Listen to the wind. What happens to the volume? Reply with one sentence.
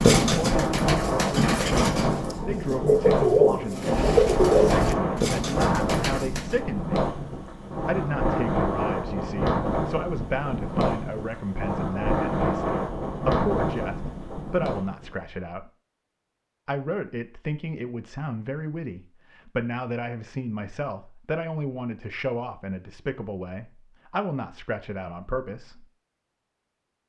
The loudness of the wind stays about the same.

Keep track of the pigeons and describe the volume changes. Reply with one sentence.
The volume of the pigeons goes up, then down.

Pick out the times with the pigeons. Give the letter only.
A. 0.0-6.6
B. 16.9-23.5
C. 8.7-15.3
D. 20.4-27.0
A.